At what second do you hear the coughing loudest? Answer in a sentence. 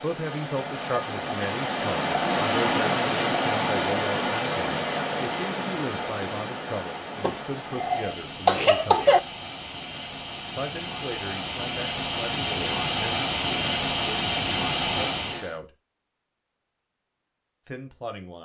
The volume of the coughing peaks at 9 seconds.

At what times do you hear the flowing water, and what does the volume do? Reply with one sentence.
You can hear the flowing water from 0.0 to 15.6 s, getting quieter then louder.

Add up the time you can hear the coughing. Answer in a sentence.
You can hear the coughing for 2 seconds altogether.